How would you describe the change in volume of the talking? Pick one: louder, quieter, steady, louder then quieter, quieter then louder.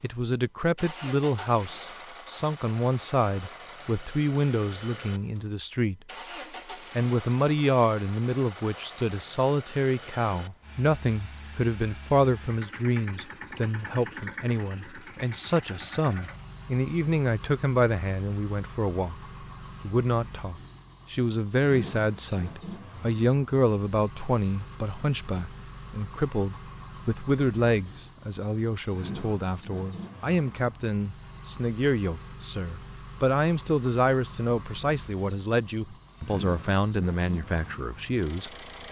steady.